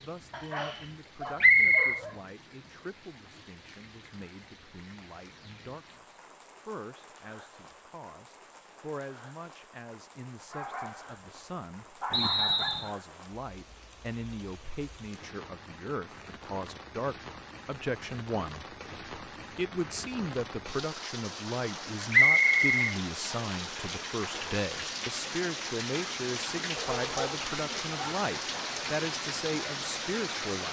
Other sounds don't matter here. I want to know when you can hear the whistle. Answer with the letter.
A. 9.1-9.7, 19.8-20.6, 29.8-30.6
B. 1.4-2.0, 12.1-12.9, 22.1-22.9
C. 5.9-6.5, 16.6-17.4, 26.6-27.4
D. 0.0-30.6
B.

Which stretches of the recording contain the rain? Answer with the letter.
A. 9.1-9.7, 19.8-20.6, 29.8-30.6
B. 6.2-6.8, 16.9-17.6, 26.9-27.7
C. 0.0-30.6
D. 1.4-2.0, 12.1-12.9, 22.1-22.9
C.